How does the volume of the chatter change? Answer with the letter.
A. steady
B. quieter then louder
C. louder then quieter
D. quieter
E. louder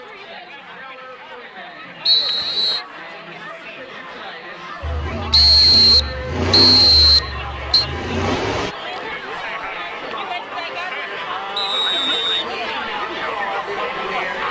E.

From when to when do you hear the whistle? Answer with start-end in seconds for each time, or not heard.
2.0-2.8, 5.3-7.8, 11.6-12.9.